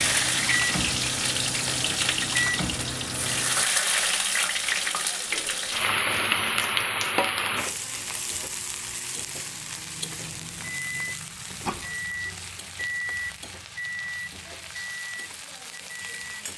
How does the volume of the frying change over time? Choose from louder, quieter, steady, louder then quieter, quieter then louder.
quieter.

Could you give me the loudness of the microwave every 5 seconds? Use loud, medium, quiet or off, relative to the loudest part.
loud, quiet, loud, off.